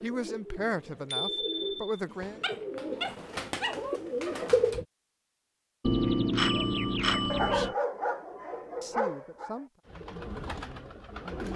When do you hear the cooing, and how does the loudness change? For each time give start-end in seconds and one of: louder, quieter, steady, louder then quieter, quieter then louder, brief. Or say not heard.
0.0-4.8 louder
9.8-11.5 brief.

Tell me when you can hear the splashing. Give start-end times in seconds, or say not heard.
not heard.